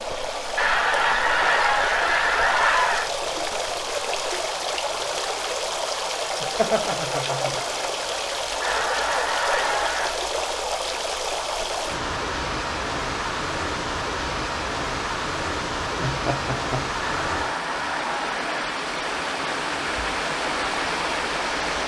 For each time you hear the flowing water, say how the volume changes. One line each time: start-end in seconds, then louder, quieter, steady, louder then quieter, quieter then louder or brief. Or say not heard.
0.0-21.8 steady.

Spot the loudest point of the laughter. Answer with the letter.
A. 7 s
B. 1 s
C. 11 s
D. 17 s
A.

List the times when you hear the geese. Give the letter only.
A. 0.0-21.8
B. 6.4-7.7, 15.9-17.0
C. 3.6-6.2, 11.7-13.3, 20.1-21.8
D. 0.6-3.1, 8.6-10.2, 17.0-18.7
D.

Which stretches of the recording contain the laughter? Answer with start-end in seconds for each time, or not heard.
6.4-7.7, 15.9-17.0.